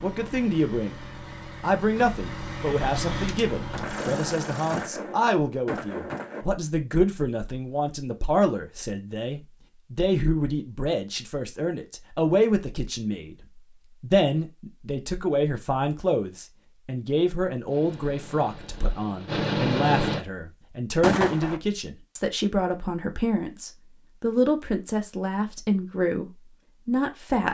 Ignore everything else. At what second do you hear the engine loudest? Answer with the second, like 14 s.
20 s.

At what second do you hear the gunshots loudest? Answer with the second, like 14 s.
21 s.